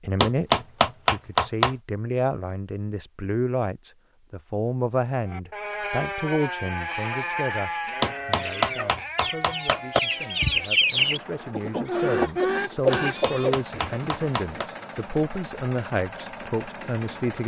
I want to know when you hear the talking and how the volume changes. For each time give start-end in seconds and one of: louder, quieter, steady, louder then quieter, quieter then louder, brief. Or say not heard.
0.0-17.4 quieter then louder.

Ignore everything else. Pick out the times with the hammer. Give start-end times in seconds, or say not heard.
0.2-1.8, 8.0-10.0, 12.9-14.7.